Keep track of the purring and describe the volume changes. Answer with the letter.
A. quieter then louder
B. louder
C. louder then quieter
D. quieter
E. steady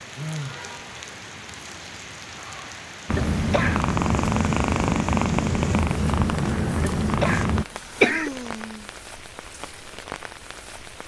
E.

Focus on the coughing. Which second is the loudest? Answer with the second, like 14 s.
8 s.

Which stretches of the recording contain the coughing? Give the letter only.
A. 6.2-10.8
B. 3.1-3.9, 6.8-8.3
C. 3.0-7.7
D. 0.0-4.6
B.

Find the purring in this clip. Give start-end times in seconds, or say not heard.
3.0-7.7.